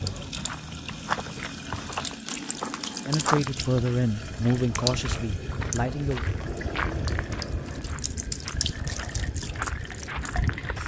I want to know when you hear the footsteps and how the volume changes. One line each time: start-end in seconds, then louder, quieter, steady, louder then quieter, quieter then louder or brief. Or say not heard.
0.0-10.8 steady.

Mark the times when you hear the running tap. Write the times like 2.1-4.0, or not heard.
0.0-10.8.